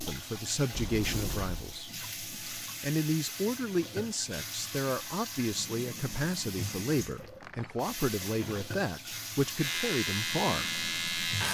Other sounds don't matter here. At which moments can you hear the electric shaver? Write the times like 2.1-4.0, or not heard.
9.6-11.4.